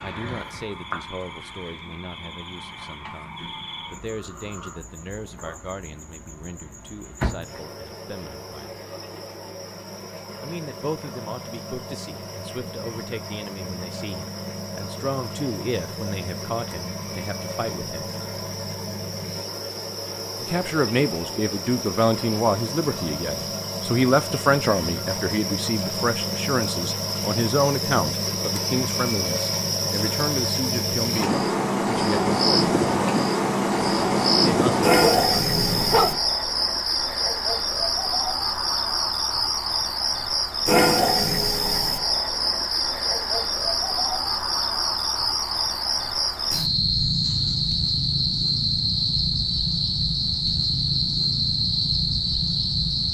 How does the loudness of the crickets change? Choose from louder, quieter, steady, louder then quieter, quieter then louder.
louder.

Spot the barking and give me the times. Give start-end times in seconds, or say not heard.
35.0-36.2.